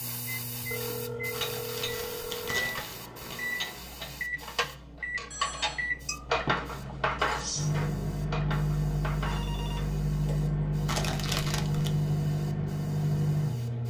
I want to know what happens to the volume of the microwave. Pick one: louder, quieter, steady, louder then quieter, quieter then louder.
louder.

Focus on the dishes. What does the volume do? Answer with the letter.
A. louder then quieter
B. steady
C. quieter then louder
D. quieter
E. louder
A.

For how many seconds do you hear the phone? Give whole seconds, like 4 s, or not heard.
3 s.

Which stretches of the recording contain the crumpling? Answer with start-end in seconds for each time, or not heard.
1.3-3.4, 10.8-11.9.